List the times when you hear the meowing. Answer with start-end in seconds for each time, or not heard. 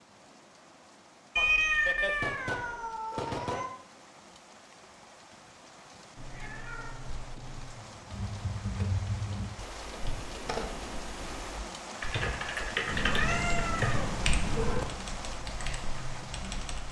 1.4-3.7, 6.2-7.8, 12.8-14.8.